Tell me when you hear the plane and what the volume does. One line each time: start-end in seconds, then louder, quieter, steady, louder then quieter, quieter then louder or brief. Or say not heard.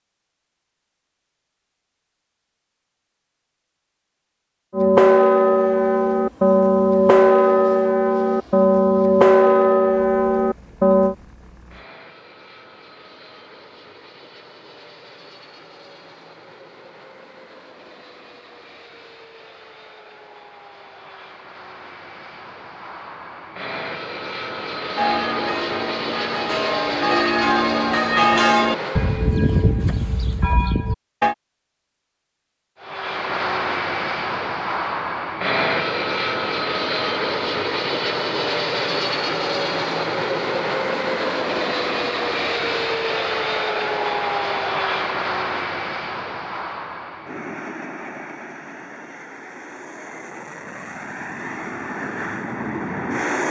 5.4-29.4 louder
32.8-53.4 quieter.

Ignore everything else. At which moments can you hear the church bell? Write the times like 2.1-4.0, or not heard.
4.7-11.2, 24.9-31.4.